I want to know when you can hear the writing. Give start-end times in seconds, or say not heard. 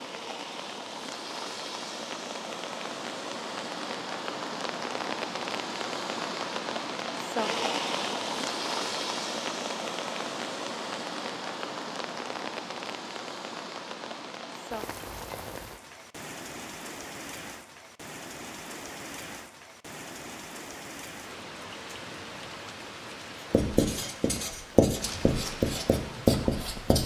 23.5-27.0.